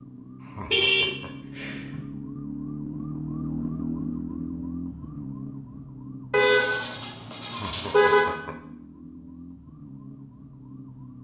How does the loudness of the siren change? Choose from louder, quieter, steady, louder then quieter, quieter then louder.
louder then quieter.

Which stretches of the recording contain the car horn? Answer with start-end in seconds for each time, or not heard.
0.7-1.9, 6.3-8.3.